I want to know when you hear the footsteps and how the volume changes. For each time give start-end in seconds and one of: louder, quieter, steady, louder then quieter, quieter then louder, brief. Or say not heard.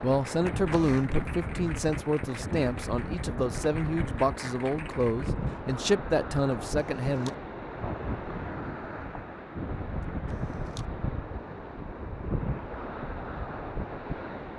not heard.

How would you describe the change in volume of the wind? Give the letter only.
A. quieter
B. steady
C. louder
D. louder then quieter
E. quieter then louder
B.